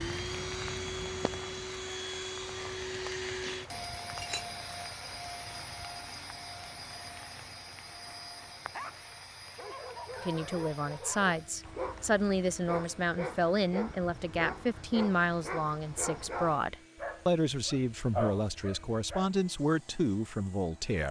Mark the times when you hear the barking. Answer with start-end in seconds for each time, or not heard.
8.7-19.3.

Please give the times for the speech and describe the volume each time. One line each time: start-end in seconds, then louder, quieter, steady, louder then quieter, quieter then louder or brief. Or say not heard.
10.2-21.0 steady.